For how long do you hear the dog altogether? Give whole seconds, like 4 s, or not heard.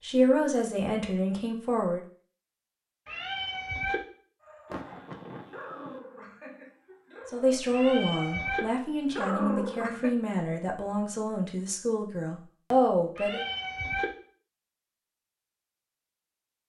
6 s.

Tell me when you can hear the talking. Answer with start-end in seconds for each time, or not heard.
0.0-2.0, 7.3-13.4.